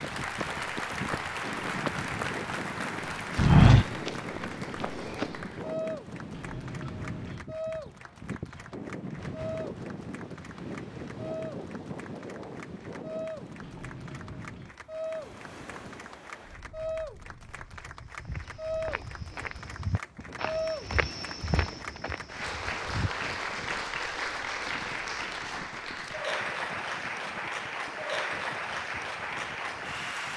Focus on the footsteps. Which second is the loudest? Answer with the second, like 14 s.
4 s.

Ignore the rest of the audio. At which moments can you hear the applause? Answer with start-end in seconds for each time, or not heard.
0.0-30.3.